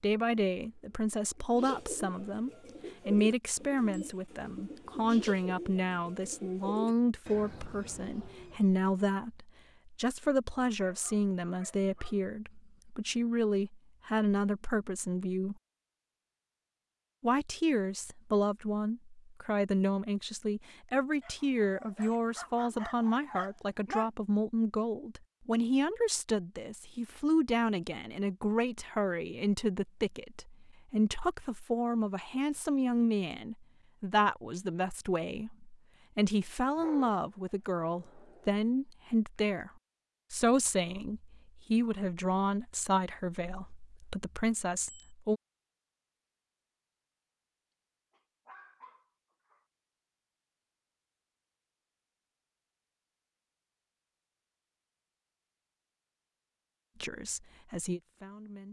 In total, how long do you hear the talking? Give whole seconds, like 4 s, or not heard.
45 s.